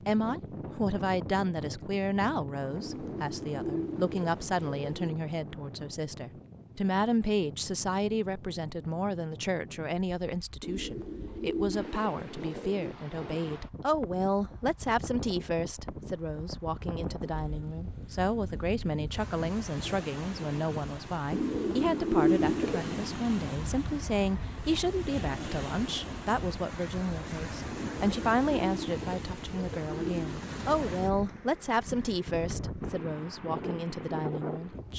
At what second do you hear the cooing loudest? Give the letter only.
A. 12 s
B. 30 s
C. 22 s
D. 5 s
C.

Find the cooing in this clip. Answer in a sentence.
The cooing can be heard from 2.8 to 5.2 s, from 10.6 to 12.9 s, from 21.3 to 23.1 s and from 27.7 to 30.5 s.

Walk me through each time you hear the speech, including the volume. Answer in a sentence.
You can hear the speech from 0.1 to 34.9 s, at a steady volume.